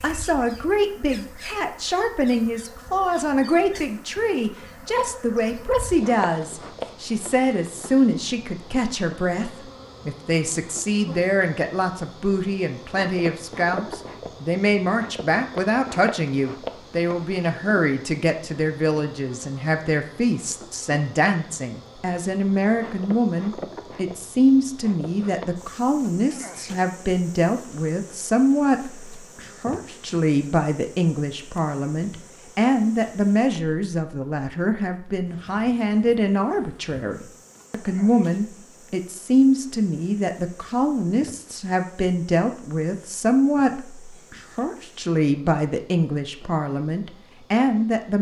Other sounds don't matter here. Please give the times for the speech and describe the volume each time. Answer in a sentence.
You can hear the speech from 0.0 to 48.1 s, at a steady volume.